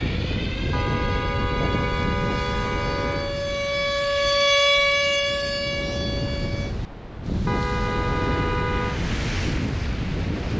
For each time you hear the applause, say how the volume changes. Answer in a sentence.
You can't hear the applause here.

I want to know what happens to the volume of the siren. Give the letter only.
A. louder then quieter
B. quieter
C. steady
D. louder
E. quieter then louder
A.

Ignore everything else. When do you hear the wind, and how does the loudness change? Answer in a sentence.
The wind can be heard from 0.0 to 10.5 s, getting quieter then louder.